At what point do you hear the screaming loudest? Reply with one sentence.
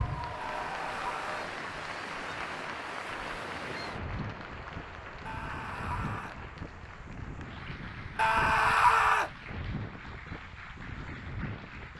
The volume of the screaming peaks at 9 seconds.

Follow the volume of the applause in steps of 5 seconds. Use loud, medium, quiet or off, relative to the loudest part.
loud, medium, medium.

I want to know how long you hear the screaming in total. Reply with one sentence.
You can hear the screaming for 3 seconds altogether.